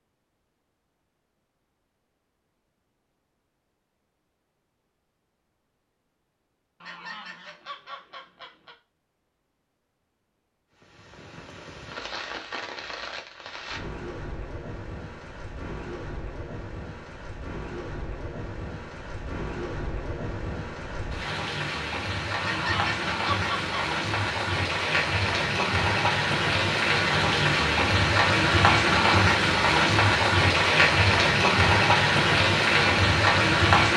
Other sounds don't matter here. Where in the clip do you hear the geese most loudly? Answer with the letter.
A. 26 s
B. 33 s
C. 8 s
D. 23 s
D.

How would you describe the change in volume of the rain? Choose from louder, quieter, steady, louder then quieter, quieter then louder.
louder.